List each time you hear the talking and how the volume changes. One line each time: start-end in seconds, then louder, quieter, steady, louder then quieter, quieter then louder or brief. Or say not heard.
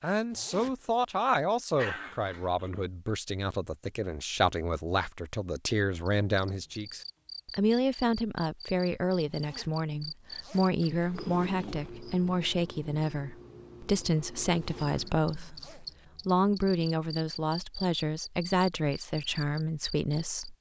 0.0-20.5 steady.